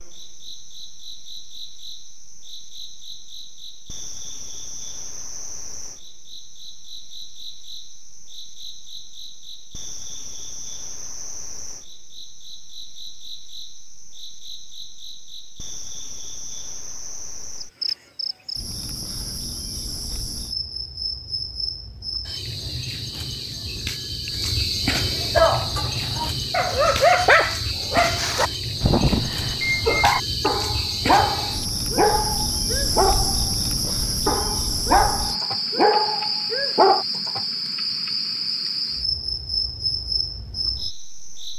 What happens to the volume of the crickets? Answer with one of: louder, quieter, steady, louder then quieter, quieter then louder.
louder.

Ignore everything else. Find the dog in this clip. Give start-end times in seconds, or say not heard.
25.4-37.0.